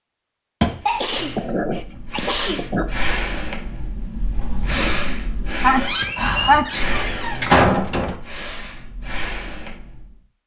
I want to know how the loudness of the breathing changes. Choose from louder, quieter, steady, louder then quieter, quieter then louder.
louder then quieter.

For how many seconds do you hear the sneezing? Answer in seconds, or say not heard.
3 s.